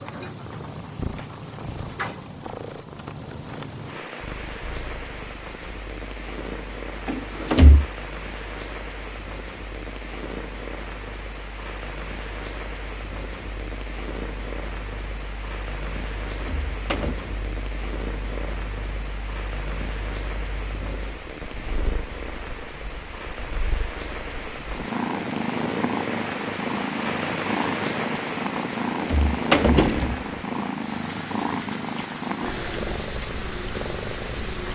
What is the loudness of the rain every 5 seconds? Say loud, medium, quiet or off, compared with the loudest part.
medium, medium, medium, medium, medium, loud, medium.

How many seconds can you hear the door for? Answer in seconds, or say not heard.
3 s.